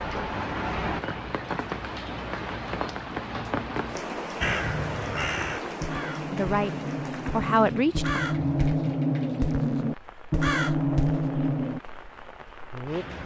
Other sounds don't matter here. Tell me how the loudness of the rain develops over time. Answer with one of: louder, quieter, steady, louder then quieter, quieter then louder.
quieter.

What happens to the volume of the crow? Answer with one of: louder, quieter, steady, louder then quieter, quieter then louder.
louder.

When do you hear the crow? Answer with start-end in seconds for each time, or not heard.
4.4-11.8.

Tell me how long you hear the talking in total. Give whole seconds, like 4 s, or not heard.
2 s.